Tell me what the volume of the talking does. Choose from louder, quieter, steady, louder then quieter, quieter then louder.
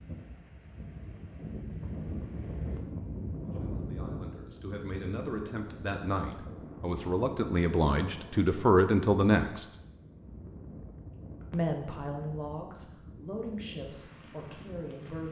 louder then quieter.